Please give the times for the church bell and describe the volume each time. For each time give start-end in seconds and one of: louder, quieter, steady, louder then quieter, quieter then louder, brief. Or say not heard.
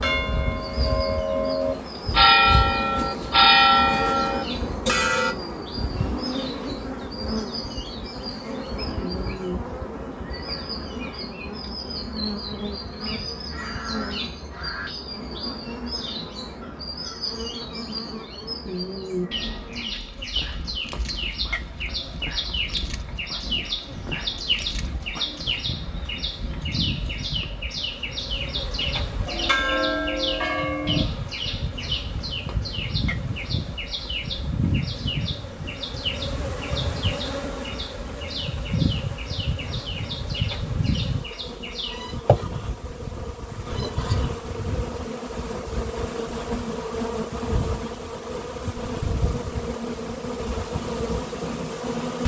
0.0-5.3 louder then quieter
29.2-31.1 brief.